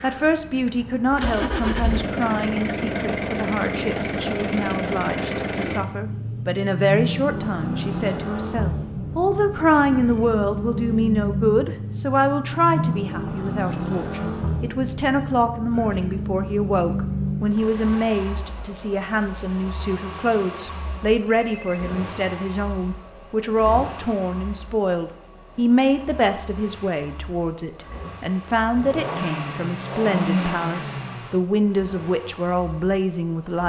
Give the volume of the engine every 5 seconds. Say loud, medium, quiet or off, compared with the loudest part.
loud, loud, loud, loud, medium, medium, loud.